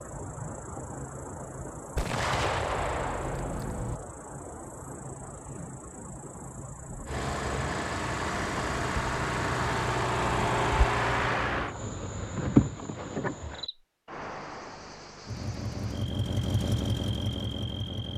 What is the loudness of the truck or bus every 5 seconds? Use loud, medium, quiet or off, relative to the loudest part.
off, loud, loud, medium.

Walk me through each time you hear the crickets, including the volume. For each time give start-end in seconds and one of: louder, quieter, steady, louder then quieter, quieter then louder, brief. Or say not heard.
0.0-18.1 louder then quieter.